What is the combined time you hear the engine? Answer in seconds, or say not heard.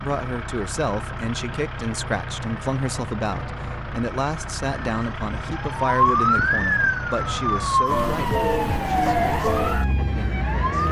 11 s.